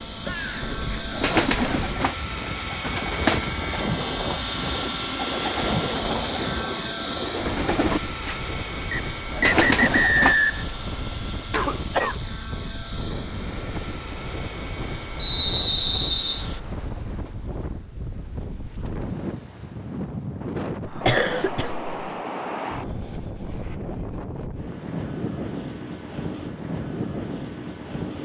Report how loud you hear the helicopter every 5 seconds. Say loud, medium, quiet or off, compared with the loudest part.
loud, loud, medium, medium, off, off.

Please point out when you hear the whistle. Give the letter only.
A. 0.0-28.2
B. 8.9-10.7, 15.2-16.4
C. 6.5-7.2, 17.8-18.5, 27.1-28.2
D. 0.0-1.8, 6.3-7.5
B.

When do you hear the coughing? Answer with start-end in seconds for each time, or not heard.
0.2-0.9, 11.5-12.2, 20.9-21.9.